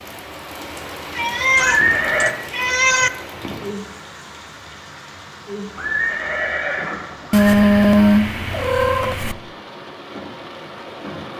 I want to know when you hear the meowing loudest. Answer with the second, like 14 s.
8 s.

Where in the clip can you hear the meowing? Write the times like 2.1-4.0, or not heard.
1.1-3.1, 7.3-9.3.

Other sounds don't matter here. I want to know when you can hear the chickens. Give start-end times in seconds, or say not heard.
not heard.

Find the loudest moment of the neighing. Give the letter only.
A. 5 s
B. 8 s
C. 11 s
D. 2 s
D.